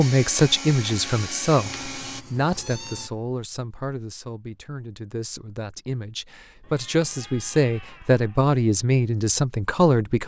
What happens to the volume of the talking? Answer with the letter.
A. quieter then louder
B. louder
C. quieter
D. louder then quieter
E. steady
A.